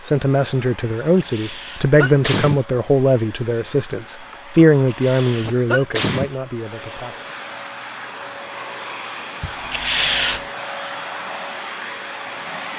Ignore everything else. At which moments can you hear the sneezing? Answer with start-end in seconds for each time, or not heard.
1.1-2.6, 4.8-6.3, 9.4-10.4.